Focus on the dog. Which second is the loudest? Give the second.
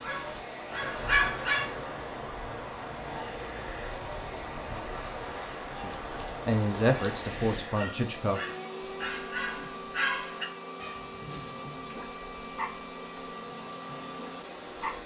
1 s.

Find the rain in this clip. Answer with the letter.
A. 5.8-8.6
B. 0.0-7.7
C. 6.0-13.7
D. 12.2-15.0
B.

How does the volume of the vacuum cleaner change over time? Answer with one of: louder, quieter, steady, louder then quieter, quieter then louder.
steady.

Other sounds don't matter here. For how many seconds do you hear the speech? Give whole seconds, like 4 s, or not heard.
3 s.